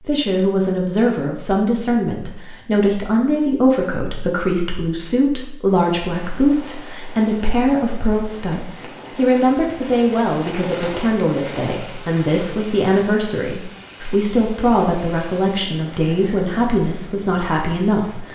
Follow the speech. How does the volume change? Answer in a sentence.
The loudness of the speech stays about the same.